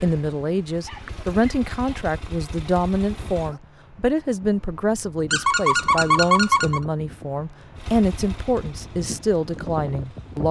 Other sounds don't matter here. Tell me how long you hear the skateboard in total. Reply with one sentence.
The skateboard can't be heard in this clip.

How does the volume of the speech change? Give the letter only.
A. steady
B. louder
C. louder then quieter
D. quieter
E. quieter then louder
A.